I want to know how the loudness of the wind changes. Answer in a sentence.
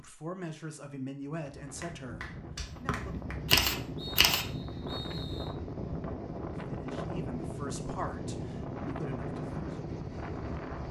The volume of the wind goes up.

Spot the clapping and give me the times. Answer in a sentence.
The clapping can be heard from 1.8 to 3.4 s.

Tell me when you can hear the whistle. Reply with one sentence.
The whistle can be heard from 2.9 to 5.5 s.